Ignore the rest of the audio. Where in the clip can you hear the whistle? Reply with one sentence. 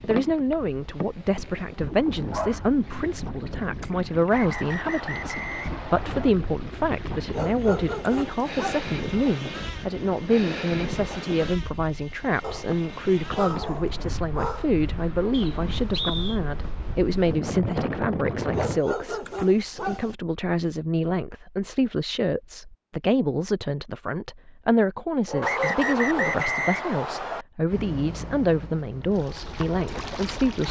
You can hear the whistle from 4.3 to 6.3 s, from 15.3 to 16.4 s and from 25.4 to 27.4 s.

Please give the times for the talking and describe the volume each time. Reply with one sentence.
You can hear the talking from 0.1 to 30.6 s, at a steady volume.